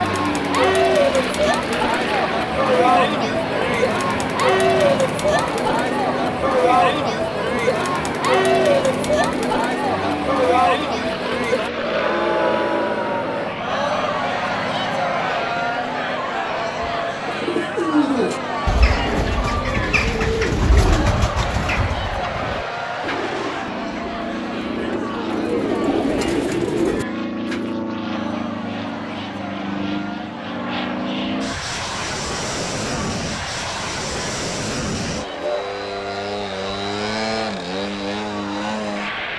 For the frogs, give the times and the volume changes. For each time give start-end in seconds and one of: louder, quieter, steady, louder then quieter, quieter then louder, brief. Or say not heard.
not heard.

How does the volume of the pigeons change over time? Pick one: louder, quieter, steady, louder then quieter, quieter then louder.
quieter then louder.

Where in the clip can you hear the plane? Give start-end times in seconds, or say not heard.
0.0-39.3.